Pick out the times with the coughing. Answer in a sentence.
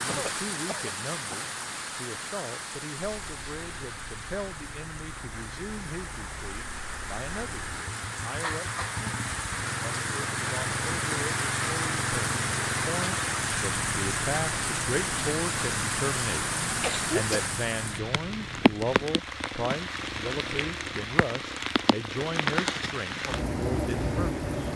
The coughing can be heard from 0.1 to 1.6 s, from 8.4 to 9.0 s and from 16.8 to 17.4 s.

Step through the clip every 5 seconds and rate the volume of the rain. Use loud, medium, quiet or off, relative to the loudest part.
medium, medium, loud, loud, loud.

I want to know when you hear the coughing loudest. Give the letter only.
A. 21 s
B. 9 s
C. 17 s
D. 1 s
C.